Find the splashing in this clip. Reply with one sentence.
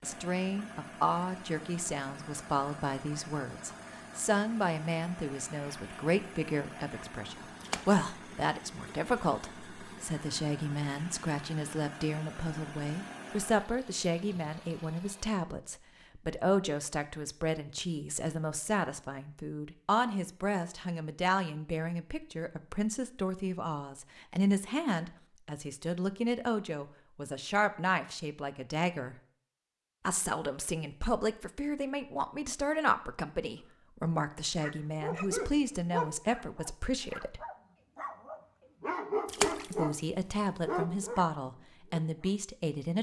You can hear the splashing from 7.6 to 8.1 s and from 39.2 to 39.9 s.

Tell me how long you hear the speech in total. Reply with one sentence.
You can hear the speech for 40 seconds altogether.